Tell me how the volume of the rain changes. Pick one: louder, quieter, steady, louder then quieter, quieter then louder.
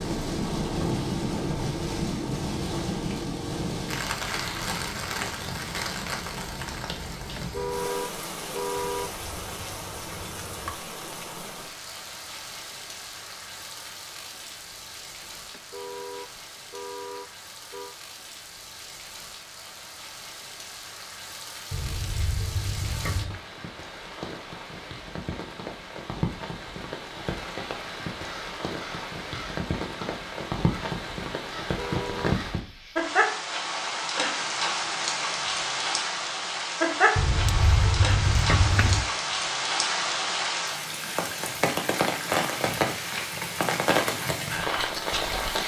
quieter then louder.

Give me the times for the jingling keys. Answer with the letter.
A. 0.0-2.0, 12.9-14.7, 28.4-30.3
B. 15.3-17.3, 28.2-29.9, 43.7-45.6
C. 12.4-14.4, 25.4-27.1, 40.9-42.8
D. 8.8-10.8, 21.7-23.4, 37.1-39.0
D.